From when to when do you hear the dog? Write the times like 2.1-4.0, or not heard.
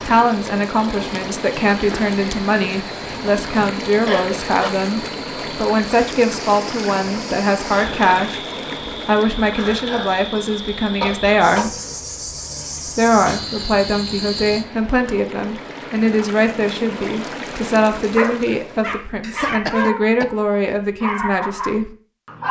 18.1-22.4.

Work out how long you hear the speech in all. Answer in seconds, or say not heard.
20 s.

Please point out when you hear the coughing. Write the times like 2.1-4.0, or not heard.
4.0-4.7, 11.0-11.8, 19.2-20.2.